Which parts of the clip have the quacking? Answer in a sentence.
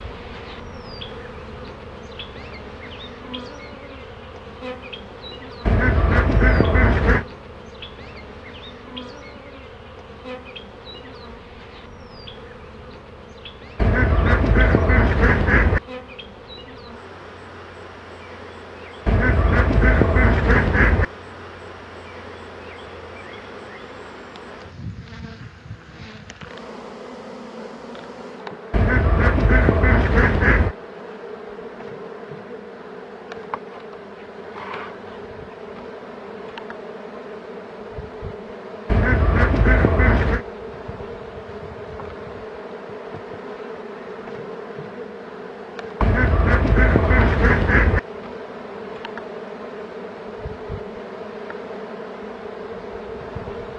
The quacking can be heard from 5.7 to 7.2 s, from 13.8 to 15.8 s, from 19.1 to 21.1 s, from 28.7 to 30.8 s, from 38.9 to 40.4 s and from 46.0 to 48.0 s.